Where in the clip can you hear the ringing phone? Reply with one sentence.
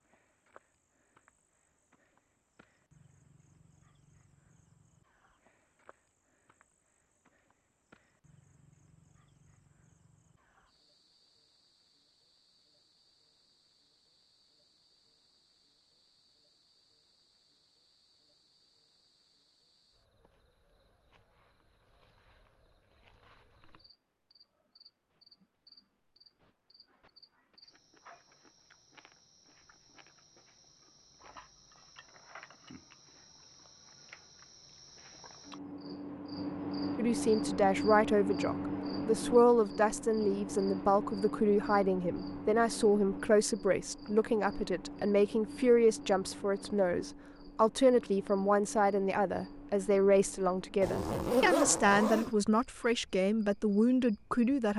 The ringing phone can't be heard in this clip.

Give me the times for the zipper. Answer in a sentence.
You can hear the zipper from 50.8 to 52.4 s.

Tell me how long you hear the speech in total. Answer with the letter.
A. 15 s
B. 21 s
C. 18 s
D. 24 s
C.